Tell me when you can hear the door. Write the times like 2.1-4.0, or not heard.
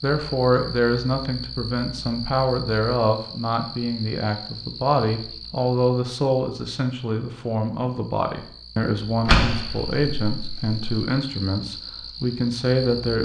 9.2-11.0.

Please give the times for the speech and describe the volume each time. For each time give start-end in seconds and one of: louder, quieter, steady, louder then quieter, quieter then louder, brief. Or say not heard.
0.0-13.2 steady.